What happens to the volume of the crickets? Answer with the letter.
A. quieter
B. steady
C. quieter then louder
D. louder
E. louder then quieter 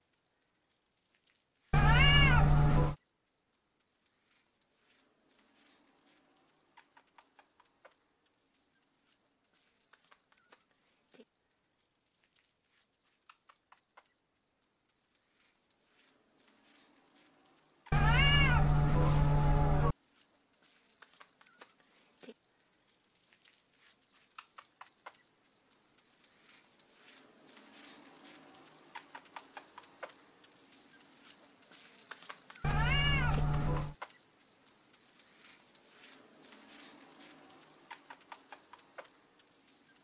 D.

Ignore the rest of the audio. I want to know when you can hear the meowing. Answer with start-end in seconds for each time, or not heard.
1.7-3.0, 17.9-19.9, 32.6-34.0.